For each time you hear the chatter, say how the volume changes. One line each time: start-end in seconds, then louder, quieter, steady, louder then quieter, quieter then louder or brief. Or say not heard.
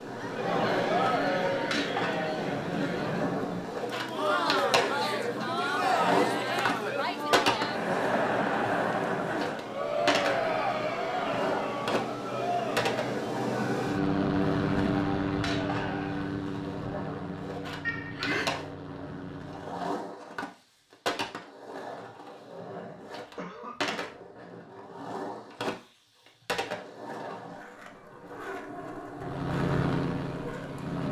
0.0-16.4 quieter.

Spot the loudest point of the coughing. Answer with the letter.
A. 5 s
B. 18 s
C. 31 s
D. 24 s
B.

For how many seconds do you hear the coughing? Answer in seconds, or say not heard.
2 s.